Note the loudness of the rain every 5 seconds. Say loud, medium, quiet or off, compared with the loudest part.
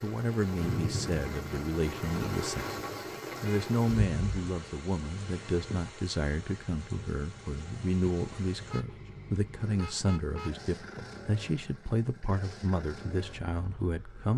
loud, medium, off.